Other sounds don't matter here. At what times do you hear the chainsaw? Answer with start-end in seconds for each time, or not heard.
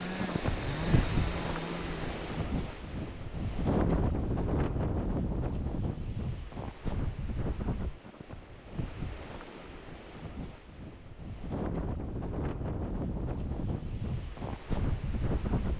0.0-2.2.